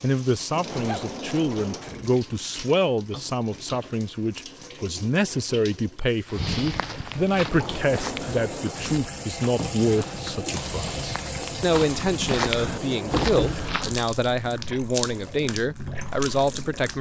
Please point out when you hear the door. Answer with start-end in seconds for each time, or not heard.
0.5-2.2, 7.5-9.1, 12.6-13.2.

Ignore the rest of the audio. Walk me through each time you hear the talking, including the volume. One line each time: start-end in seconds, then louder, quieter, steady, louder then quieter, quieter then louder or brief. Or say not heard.
0.0-16.9 steady.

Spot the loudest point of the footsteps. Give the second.
12 s.